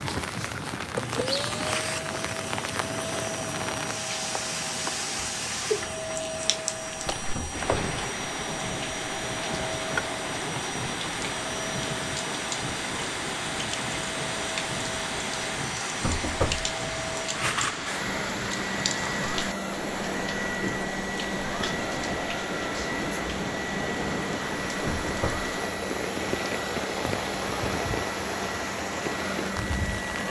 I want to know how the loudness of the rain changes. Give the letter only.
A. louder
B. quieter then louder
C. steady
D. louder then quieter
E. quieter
C.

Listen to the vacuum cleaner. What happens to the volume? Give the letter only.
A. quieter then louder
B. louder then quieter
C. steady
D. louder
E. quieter
C.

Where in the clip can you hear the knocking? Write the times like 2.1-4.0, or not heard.
7.3-8.0, 16.0-16.7, 24.9-25.4.